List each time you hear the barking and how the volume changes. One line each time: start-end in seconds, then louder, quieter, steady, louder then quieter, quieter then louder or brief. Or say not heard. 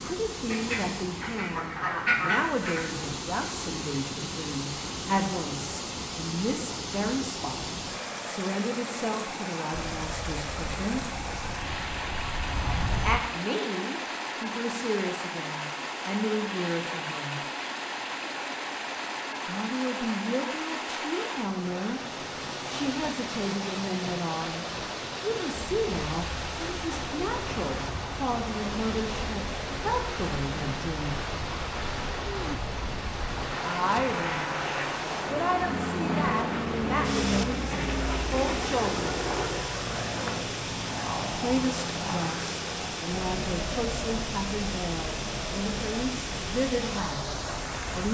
not heard.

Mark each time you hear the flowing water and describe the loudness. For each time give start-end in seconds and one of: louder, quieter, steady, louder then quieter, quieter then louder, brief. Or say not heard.
0.0-48.0 steady.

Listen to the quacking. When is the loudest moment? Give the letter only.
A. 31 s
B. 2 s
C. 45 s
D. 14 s
B.